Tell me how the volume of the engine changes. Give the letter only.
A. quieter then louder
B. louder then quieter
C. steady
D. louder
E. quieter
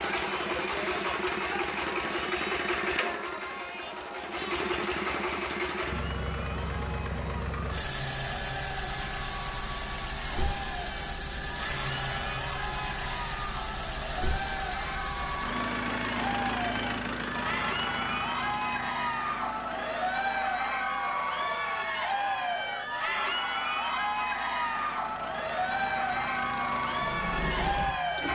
E.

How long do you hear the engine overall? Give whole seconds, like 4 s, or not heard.
28 s.